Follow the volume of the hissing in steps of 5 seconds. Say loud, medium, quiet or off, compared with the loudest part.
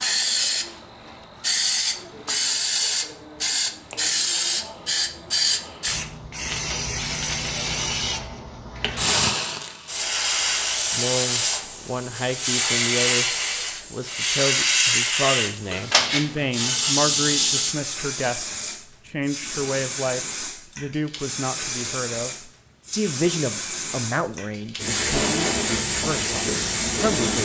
loud, loud, loud, loud, medium, loud.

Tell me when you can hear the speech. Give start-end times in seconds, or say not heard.
10.9-13.3, 13.9-27.3.